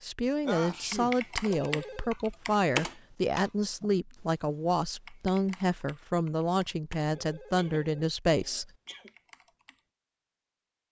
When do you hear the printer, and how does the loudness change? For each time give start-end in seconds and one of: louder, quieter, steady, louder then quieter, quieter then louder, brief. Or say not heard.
not heard.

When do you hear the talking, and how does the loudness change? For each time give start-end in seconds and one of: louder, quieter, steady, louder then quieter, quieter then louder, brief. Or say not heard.
0.0-8.7 steady.